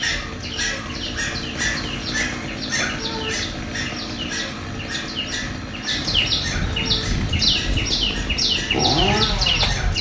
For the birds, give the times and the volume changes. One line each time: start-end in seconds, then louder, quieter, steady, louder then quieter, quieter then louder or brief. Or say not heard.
0.1-9.9 louder.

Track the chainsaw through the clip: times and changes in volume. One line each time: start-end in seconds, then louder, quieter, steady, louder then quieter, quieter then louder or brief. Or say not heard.
0.0-9.9 louder.